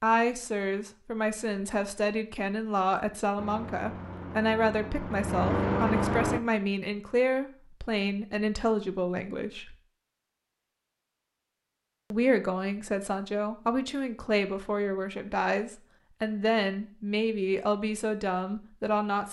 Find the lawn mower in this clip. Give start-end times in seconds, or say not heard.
3.4-6.4.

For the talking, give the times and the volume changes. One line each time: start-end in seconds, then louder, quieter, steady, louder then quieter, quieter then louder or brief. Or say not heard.
0.0-9.8 steady
12.1-19.2 steady.